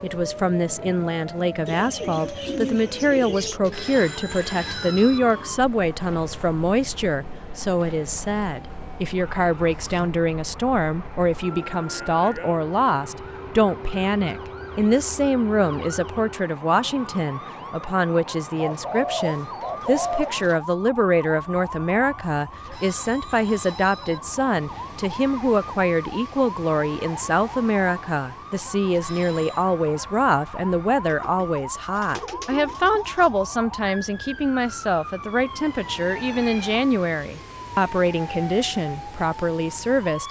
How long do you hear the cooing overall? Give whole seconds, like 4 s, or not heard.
6 s.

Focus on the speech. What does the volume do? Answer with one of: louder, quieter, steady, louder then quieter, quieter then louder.
steady.